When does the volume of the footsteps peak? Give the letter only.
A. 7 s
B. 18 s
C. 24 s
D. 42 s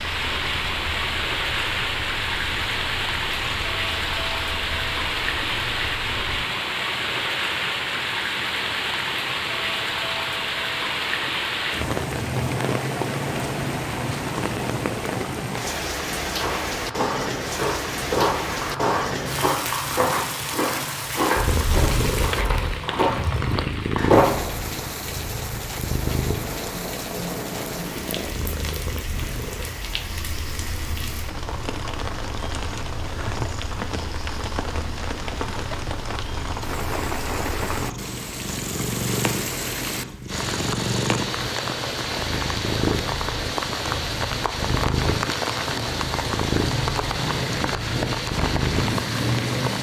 C.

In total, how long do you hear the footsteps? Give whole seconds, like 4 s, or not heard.
8 s.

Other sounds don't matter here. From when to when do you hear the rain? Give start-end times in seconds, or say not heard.
0.0-49.7.